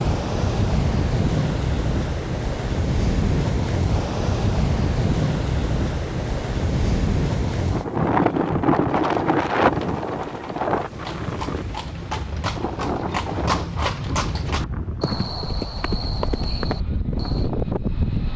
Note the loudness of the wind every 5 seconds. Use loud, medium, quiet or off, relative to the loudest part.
loud, loud, medium, medium.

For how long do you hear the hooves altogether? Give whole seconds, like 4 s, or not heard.
9 s.